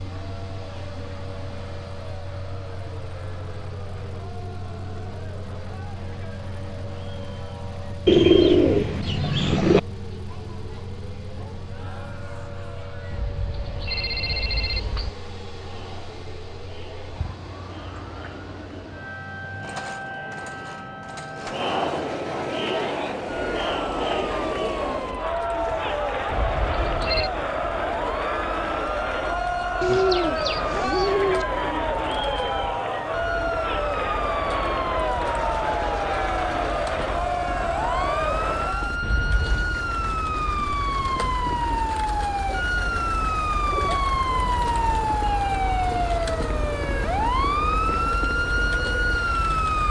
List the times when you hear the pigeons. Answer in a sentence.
You can hear the pigeons from 8.1 to 9.8 s, from 29.8 to 31.4 s and from 42.5 to 44.0 s.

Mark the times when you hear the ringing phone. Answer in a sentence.
You can hear the ringing phone from 13.1 to 15.1 s, from 26.3 to 27.3 s and from 39.0 to 39.6 s.